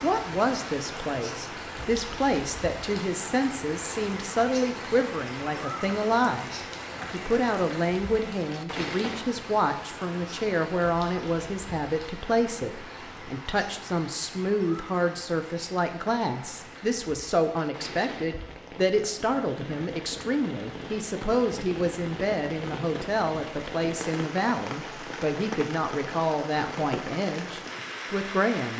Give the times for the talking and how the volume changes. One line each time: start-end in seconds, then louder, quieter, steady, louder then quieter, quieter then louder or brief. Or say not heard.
0.0-6.5 steady
7.1-28.7 steady.